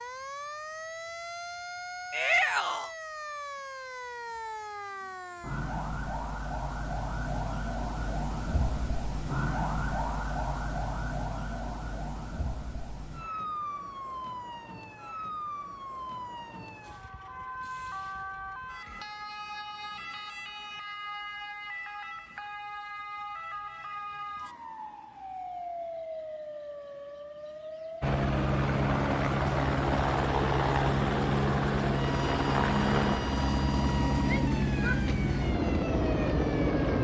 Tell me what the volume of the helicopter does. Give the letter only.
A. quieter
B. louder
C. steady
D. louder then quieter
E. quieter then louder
C.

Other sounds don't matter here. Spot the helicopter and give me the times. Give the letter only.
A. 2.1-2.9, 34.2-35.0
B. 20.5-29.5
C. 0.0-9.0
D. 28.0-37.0
D.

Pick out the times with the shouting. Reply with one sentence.
The shouting can be heard from 2.1 to 2.9 s and from 34.2 to 35.0 s.